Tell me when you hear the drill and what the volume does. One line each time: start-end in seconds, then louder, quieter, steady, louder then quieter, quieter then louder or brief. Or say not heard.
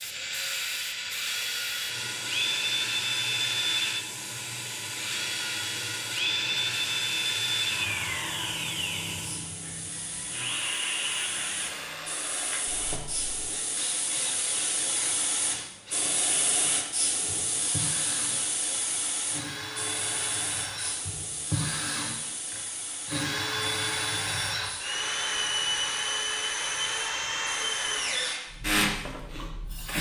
0.0-29.9 quieter then louder.